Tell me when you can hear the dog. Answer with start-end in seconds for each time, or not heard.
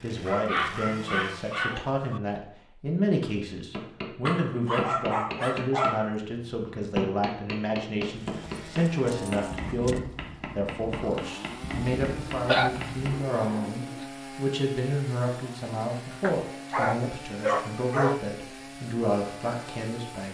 0.2-2.2, 4.2-6.2, 8.2-10.0, 12.3-14.1, 16.2-18.2.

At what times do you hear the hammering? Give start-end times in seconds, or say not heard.
3.7-13.3.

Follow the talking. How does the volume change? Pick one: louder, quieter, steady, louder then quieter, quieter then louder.
steady.